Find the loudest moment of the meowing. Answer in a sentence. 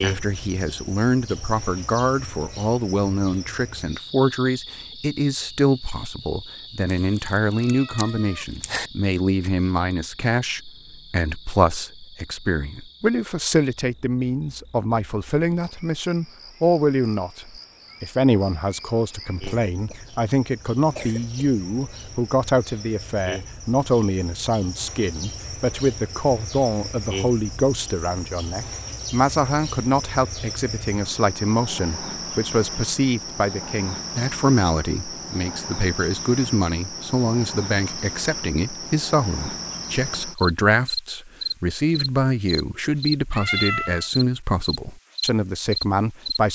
The loudest moment of the meowing is at 44 seconds.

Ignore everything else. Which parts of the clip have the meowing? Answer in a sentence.
You can hear the meowing from 7.2 to 8.9 s and from 43.3 to 44.1 s.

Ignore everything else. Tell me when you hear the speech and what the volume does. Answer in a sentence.
You can hear the speech from 0.0 to 46.4 s, at a steady volume.